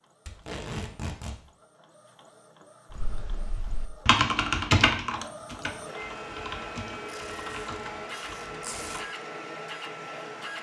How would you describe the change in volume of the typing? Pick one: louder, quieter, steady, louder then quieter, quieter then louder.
quieter.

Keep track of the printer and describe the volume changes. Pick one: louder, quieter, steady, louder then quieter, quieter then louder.
louder.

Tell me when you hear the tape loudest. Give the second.
1 s.